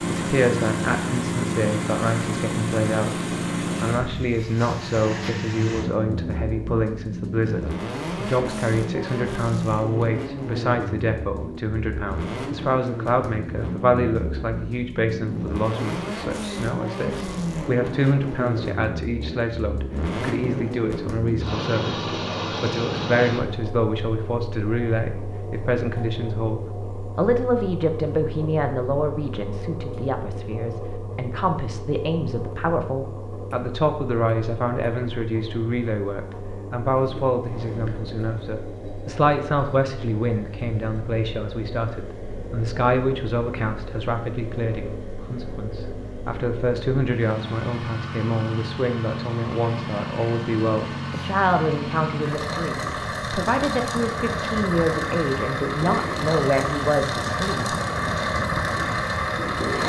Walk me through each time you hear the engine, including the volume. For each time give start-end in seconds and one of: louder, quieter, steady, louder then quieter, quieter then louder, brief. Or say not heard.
0.0-59.8 quieter then louder.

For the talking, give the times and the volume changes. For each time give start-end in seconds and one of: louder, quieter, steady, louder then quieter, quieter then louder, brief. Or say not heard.
0.1-57.8 steady.